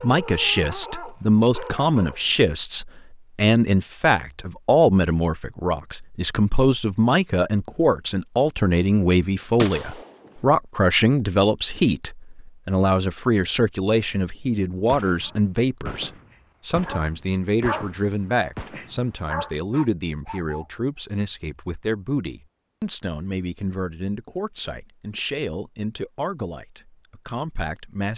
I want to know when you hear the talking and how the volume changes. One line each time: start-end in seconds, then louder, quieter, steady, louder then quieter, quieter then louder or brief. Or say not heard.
0.0-28.1 quieter.